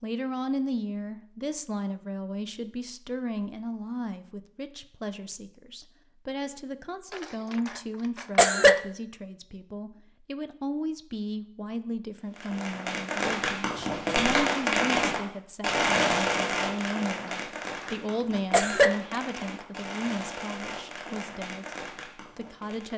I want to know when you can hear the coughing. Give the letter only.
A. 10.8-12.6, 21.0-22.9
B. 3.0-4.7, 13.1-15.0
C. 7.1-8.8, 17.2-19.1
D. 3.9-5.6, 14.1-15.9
C.